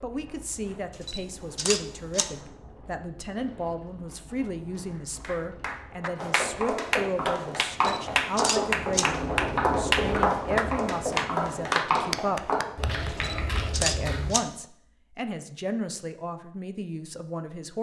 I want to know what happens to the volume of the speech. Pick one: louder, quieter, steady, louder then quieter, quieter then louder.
steady.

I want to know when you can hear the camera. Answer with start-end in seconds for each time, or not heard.
1.0-2.4, 7.7-9.2, 13.1-14.5.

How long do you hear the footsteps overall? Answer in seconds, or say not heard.
8 s.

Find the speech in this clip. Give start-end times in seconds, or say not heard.
0.0-12.5, 13.8-17.7.